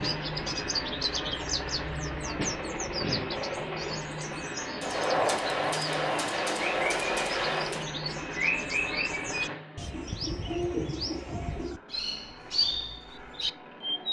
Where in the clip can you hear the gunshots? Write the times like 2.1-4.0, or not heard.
4.8-7.8.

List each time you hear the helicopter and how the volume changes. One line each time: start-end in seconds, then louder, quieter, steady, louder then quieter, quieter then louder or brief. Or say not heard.
0.0-14.0 quieter.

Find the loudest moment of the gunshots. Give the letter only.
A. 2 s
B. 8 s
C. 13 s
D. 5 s
D.